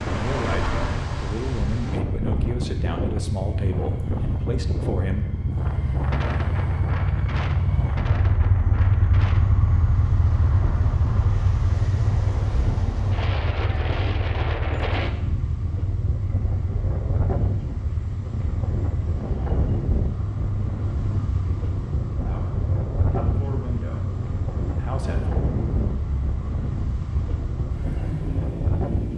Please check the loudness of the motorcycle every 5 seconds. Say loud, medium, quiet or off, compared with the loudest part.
medium, loud, loud, medium, medium, medium.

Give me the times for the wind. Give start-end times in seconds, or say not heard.
0.0-29.1.